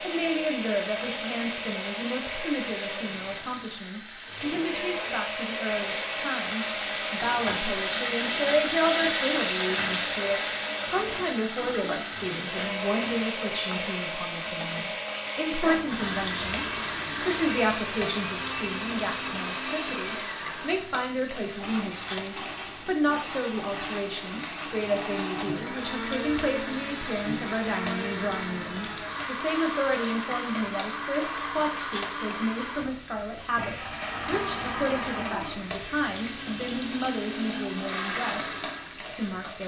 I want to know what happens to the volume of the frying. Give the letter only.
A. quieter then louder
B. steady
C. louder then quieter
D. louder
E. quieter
E.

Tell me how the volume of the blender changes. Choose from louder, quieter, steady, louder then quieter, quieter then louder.
steady.